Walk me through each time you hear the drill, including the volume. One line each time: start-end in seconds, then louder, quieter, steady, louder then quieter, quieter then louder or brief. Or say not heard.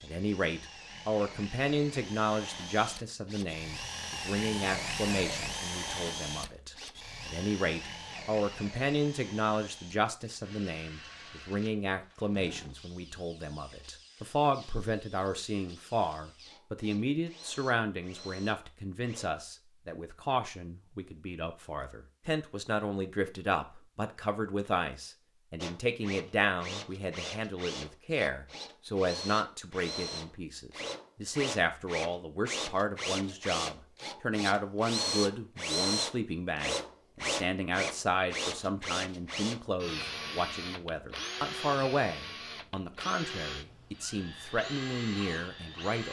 0.0-19.3 louder then quieter
25.6-46.0 louder then quieter.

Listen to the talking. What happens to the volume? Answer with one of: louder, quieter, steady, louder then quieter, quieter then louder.
steady.